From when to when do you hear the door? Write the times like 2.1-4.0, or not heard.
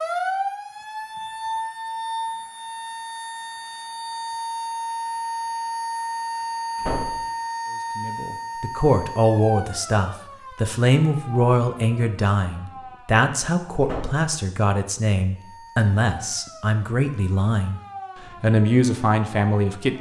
6.8-7.2, 13.8-14.2.